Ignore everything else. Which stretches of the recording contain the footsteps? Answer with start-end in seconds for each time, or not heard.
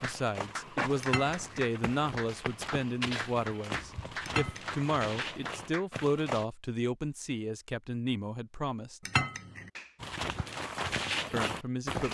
0.0-6.5, 10.0-12.0.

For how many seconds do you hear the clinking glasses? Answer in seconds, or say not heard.
2 s.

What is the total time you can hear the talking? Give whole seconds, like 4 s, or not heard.
10 s.